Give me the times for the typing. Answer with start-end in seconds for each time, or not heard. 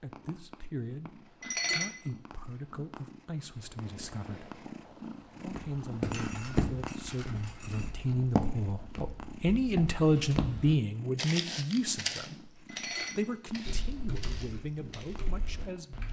13.7-16.0.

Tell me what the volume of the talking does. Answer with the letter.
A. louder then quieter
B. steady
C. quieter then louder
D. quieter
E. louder
A.